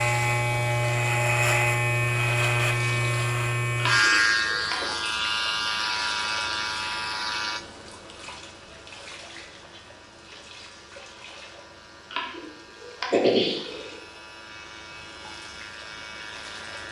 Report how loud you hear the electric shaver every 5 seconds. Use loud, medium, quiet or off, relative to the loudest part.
loud, medium, quiet, quiet.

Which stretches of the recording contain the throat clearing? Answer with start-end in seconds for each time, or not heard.
3.8-4.8, 12.1-14.0.